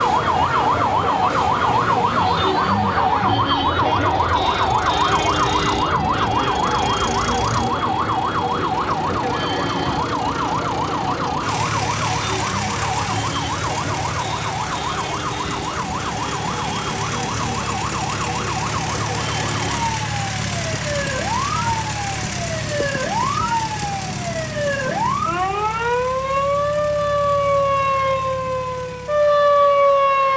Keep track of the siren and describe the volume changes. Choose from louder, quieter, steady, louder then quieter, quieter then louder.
quieter then louder.